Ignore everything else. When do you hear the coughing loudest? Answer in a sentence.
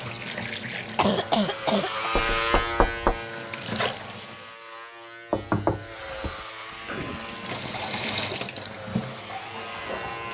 The volume of the coughing peaks at 1 second.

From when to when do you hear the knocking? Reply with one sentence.
The knocking can be heard from 2.1 to 3.1 s and from 5.3 to 6.5 s.